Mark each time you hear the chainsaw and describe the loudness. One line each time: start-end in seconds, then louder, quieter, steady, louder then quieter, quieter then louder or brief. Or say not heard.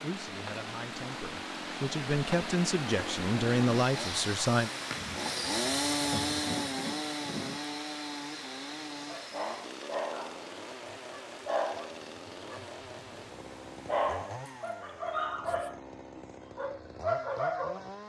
0.0-18.0 louder then quieter.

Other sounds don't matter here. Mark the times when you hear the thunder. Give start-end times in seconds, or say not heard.
5.0-7.6.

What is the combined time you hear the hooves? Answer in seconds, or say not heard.
not heard.